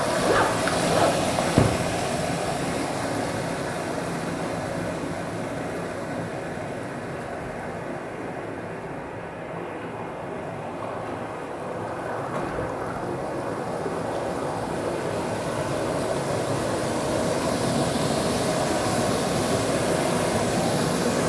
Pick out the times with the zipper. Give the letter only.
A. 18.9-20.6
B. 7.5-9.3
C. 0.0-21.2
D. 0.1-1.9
D.